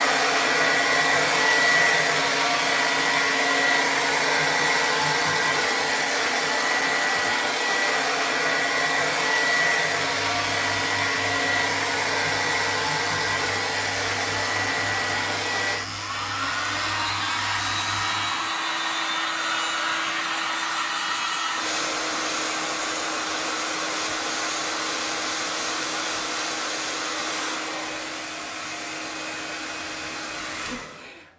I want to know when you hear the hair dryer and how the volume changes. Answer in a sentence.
You can hear the hair dryer from 0.0 to 31.3 s, getting quieter.